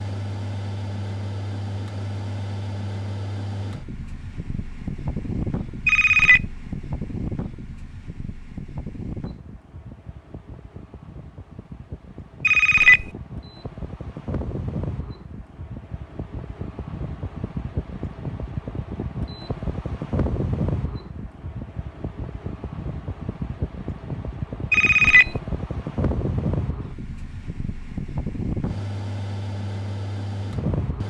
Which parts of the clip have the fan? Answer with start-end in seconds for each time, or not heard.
0.0-31.0.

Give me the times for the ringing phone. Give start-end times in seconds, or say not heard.
5.8-6.5, 12.4-13.1, 24.7-25.4.